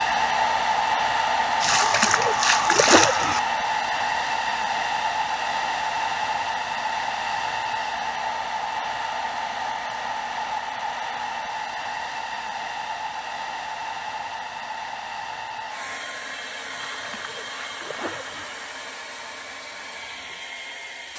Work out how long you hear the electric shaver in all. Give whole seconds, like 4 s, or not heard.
not heard.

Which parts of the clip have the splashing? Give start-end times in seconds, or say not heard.
1.6-3.4, 16.7-18.5.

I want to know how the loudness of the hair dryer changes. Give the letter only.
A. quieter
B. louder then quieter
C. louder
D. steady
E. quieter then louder
A.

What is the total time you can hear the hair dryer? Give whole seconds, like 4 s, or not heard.
21 s.